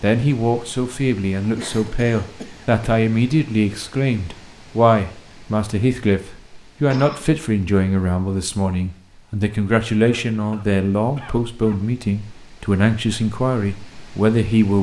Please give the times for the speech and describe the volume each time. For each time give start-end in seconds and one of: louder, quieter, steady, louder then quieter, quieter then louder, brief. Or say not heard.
0.0-14.7 steady.